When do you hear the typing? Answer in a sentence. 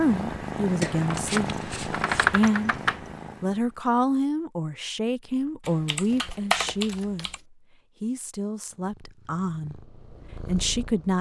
You can hear the typing from 1.0 to 3.0 s and from 5.7 to 7.3 s.